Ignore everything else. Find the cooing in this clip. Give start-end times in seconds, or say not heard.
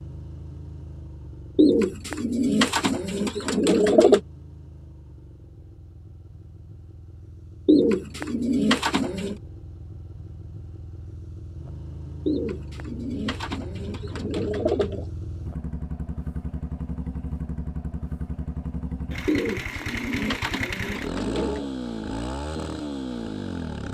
1.6-4.2, 7.7-9.4, 12.2-15.1, 19.2-21.7.